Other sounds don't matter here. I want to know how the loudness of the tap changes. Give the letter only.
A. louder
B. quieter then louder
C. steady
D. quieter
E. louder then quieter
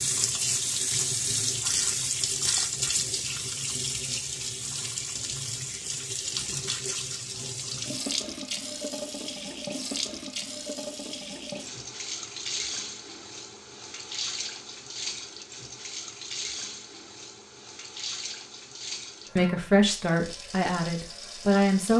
D.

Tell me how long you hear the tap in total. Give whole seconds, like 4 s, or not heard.
22 s.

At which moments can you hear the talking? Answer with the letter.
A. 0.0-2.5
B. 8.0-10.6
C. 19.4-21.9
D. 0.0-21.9
C.